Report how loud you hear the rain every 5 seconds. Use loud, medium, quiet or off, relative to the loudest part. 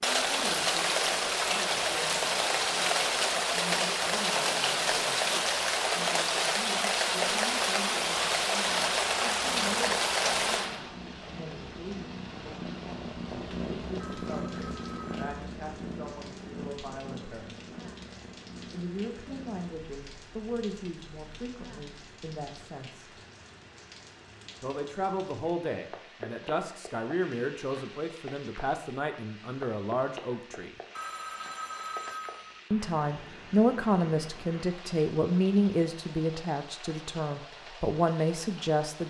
loud, loud, medium, quiet, quiet, quiet, quiet, quiet.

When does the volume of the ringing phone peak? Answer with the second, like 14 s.
32 s.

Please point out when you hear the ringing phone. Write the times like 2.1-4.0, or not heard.
14.0-15.3, 30.9-32.6.